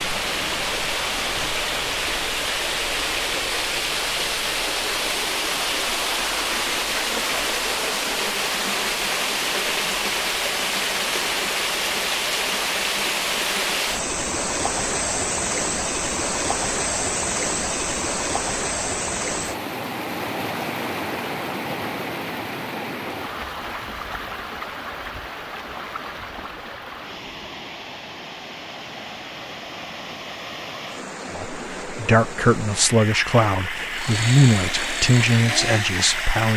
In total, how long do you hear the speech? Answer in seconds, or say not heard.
5 s.